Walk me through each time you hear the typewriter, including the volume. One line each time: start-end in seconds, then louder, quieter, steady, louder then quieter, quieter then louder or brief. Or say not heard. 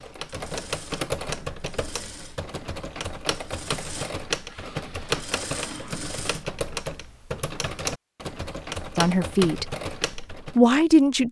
0.0-10.7 steady.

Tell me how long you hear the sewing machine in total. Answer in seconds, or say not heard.
6 s.